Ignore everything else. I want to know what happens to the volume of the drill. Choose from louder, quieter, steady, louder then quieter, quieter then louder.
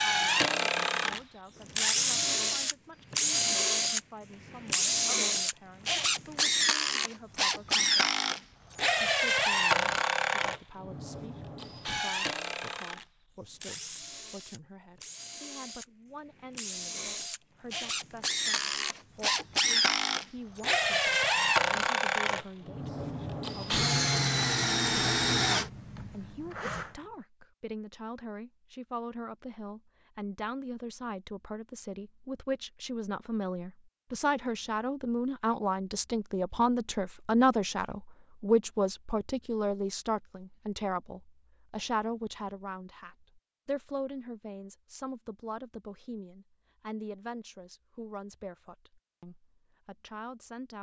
quieter then louder.